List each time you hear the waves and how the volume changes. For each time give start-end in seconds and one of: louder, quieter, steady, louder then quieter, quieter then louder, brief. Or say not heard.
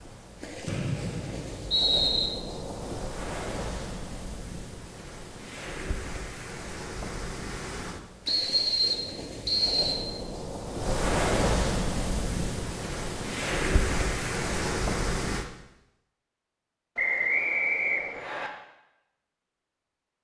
0.0-15.4 louder.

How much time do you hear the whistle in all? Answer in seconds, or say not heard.
5 s.